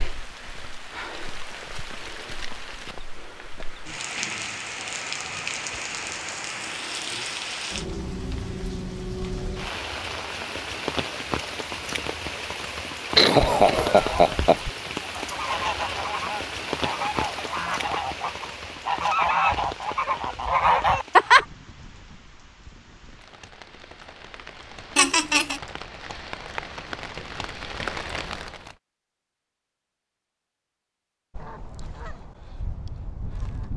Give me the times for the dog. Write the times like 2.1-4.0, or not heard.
not heard.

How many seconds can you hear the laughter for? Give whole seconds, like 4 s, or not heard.
2 s.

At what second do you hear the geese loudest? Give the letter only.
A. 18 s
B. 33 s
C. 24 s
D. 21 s
D.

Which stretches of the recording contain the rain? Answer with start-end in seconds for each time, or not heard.
0.0-28.8.